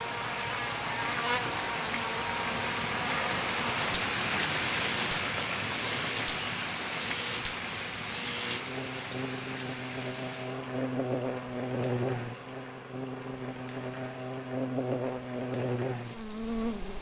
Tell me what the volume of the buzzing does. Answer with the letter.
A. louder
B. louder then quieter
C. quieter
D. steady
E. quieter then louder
D.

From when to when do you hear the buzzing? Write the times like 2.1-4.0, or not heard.
0.0-16.9.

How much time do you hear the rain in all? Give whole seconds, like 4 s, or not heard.
17 s.